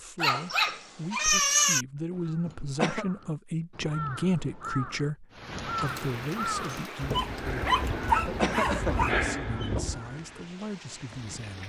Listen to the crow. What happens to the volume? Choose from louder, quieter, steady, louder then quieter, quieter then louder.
louder.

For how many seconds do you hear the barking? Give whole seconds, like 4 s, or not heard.
4 s.